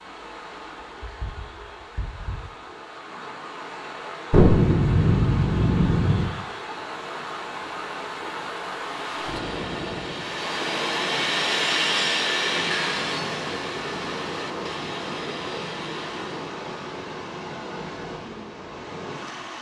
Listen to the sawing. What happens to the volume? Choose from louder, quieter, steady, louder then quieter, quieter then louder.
louder then quieter.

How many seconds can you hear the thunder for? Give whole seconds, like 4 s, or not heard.
2 s.